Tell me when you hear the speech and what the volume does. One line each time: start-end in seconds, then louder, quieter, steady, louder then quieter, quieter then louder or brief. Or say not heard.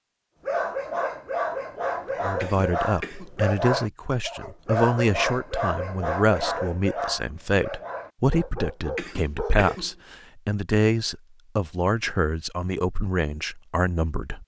2.2-14.4 steady.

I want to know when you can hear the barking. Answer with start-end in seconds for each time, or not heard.
0.5-9.8.